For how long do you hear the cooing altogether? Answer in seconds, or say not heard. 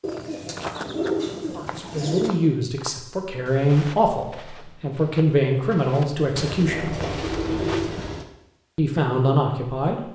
4 s.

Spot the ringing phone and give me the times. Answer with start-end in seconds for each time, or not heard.
not heard.